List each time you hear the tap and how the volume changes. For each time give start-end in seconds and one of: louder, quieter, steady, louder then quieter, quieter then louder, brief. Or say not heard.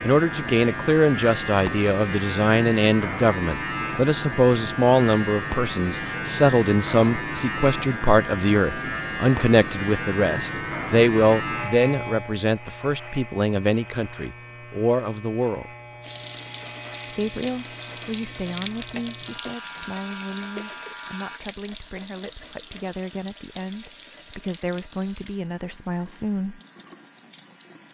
16.0-27.8 quieter.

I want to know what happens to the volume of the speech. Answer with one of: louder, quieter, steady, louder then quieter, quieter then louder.
quieter.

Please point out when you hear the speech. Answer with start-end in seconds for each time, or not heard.
0.0-15.7, 17.1-26.6.